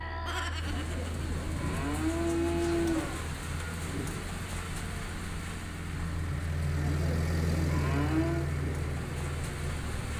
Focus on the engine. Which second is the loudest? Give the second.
8 s.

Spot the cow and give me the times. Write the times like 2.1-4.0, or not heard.
0.7-3.2, 6.8-8.5.